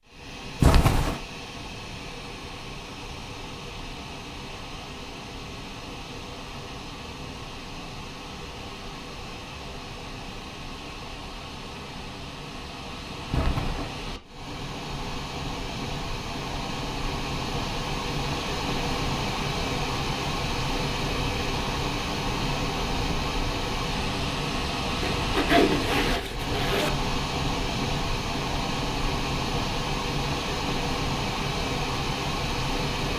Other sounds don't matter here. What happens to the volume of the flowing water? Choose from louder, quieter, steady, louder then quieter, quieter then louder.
louder.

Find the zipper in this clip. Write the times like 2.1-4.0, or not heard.
0.6-1.2, 13.3-13.9, 25.0-26.9.